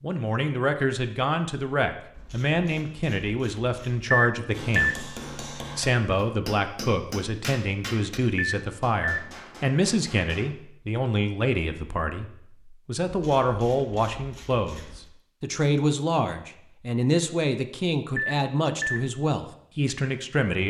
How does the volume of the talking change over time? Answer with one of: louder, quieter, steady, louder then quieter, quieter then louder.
steady.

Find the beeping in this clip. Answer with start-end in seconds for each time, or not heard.
4.1-5.0, 8.3-9.3, 18.1-19.1.